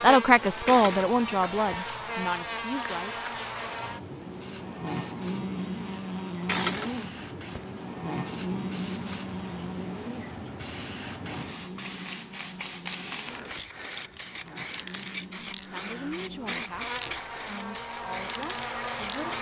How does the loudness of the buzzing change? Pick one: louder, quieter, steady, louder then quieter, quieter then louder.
quieter then louder.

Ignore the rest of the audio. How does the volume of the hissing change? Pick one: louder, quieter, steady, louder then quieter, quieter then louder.
louder.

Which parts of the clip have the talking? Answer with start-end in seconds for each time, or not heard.
0.0-3.2, 15.6-19.3.